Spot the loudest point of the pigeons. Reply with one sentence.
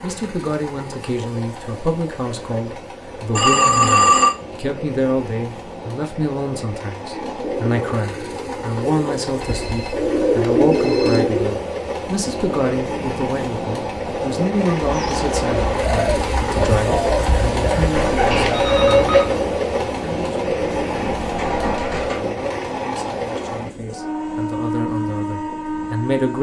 The loudest moment of the pigeons is at 11 seconds.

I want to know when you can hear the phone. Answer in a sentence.
The phone can be heard from 3.4 to 4.3 s, from 9.4 to 11.2 s and from 18.3 to 19.2 s.